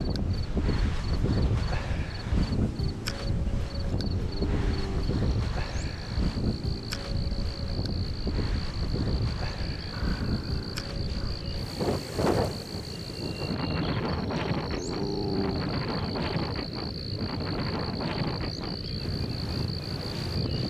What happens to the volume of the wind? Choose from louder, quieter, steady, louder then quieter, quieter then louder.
steady.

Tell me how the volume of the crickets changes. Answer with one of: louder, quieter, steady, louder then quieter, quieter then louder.
louder.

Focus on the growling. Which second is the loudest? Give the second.
15 s.